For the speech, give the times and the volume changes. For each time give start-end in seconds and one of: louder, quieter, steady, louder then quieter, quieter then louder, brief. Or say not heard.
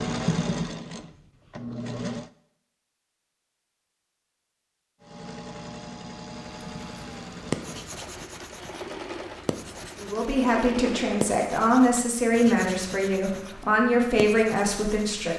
10.0-15.3 steady.